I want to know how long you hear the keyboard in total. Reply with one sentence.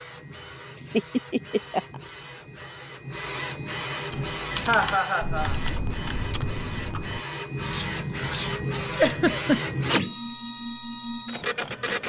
The keyboard can be heard for 5 seconds in total.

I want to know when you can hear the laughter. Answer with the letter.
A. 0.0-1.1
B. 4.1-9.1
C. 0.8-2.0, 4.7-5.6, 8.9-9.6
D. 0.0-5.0
C.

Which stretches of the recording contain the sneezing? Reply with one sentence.
You can hear the sneezing from 7.4 to 8.6 s.